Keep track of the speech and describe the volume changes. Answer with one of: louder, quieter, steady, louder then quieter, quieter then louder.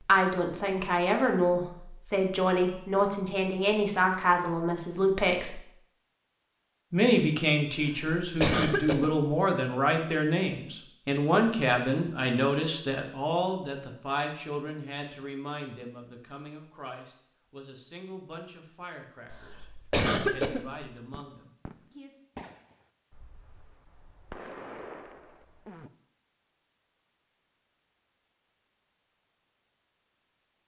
quieter.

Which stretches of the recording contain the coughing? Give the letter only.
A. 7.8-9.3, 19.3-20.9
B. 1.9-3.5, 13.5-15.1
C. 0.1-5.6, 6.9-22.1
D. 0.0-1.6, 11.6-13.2
A.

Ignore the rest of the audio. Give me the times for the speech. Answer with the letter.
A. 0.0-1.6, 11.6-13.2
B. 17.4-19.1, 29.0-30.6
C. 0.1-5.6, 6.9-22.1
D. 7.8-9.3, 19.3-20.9
C.